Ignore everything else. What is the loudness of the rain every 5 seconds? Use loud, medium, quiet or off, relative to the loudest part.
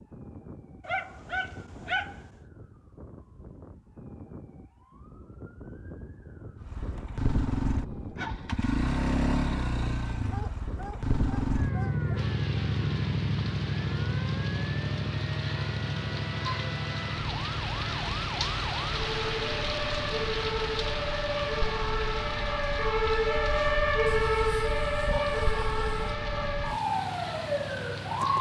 off, off, medium, loud, loud, medium.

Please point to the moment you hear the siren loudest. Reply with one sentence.
The volume of the siren peaks at 24 seconds.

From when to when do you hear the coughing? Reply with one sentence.
You can't hear the coughing here.